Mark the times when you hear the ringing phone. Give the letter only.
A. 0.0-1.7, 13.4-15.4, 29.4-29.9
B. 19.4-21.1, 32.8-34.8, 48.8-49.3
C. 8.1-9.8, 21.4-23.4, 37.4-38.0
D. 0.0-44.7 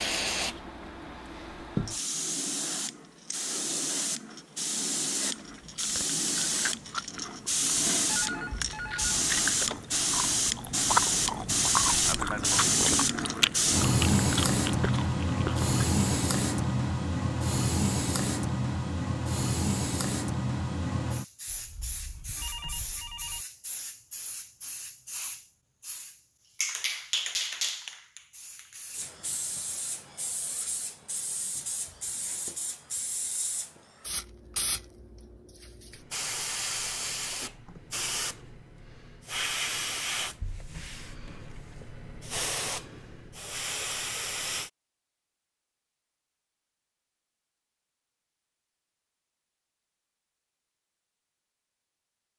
C.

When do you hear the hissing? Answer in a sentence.
The hissing can be heard from 0.0 to 44.7 s.